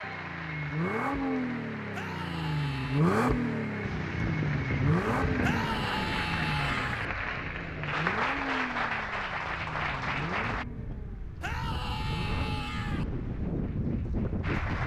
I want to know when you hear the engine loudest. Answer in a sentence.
The volume of the engine peaks at 3 seconds.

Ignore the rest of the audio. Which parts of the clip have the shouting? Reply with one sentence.
The shouting can be heard from 1.9 to 3.0 s, from 5.4 to 7.0 s and from 11.4 to 13.1 s.